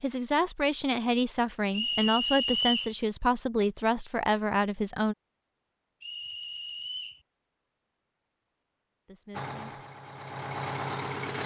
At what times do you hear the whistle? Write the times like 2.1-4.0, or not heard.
1.7-3.0, 6.0-7.2.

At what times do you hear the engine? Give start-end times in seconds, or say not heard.
9.3-11.4.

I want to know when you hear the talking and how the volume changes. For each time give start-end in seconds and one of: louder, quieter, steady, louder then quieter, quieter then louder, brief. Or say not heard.
0.0-5.2 steady
9.1-9.8 brief.